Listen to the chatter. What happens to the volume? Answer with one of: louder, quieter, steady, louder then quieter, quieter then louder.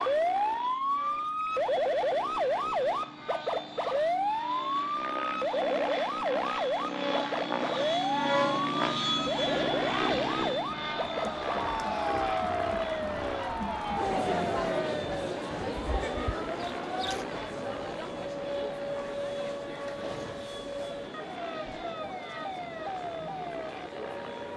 quieter.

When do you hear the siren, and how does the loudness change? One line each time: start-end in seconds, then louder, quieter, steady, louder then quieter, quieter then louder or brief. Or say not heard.
0.0-24.5 quieter.